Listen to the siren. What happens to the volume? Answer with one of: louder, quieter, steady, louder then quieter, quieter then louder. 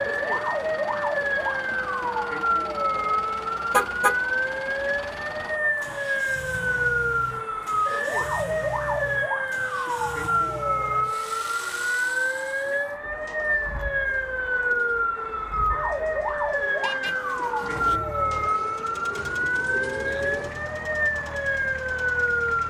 steady.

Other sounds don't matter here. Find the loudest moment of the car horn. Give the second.
4 s.